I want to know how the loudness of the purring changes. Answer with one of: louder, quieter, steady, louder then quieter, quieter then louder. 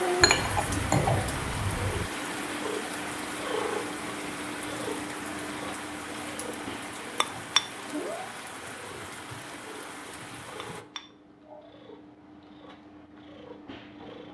quieter.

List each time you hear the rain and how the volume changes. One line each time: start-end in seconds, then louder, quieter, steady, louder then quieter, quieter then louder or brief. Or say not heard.
0.0-10.8 quieter.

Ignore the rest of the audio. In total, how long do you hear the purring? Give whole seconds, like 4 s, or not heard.
14 s.